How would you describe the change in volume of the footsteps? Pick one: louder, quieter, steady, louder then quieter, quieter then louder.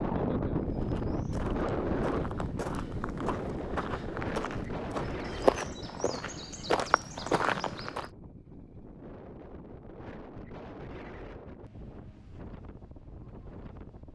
louder.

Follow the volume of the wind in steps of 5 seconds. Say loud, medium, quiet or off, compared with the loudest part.
loud, medium, quiet.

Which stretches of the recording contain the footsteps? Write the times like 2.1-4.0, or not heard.
0.7-8.1.